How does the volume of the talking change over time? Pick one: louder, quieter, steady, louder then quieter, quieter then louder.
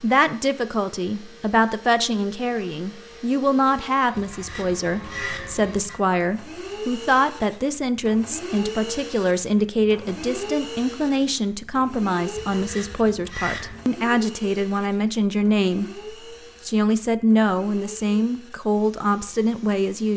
steady.